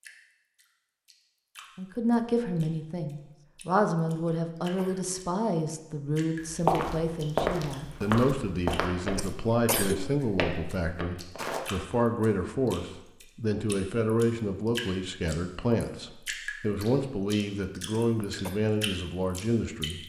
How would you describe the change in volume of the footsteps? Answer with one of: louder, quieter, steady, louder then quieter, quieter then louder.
quieter then louder.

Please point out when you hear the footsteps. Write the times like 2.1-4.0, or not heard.
6.4-11.7.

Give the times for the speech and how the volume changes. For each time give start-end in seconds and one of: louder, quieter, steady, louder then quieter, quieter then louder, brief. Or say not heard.
1.8-20.0 steady.